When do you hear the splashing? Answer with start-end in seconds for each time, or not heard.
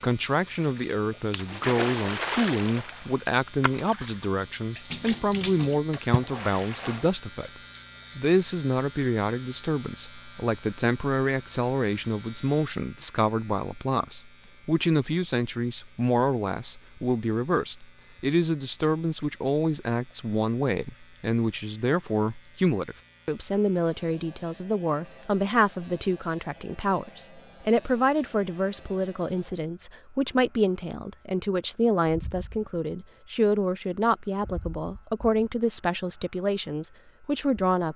0.6-7.1.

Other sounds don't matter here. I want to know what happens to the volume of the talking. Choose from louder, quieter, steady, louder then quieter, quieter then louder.
steady.